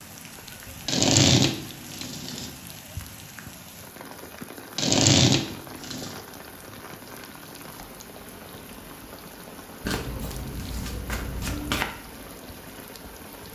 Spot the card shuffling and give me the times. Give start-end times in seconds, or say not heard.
0.8-2.5, 4.8-6.2, 9.8-11.8.